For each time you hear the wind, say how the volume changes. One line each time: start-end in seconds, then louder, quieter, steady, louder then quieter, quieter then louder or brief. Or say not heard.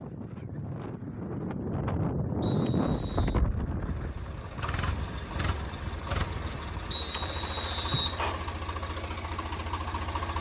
0.0-7.0 louder then quieter.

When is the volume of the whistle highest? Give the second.
7 s.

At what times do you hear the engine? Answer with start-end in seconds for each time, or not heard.
3.9-10.3.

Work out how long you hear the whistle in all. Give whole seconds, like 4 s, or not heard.
2 s.